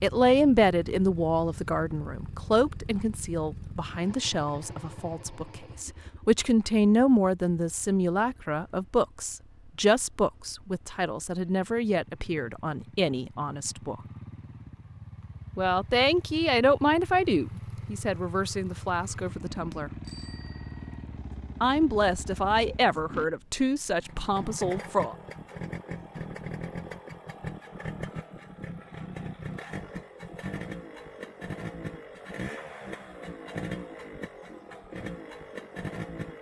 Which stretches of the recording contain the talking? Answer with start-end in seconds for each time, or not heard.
0.0-13.9, 15.6-19.9, 21.6-25.1.